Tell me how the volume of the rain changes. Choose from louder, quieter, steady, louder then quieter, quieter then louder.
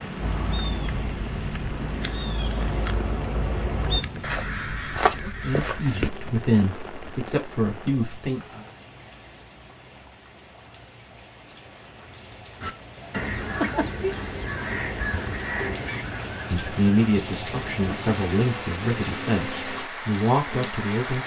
quieter then louder.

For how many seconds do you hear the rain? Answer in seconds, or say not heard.
21 s.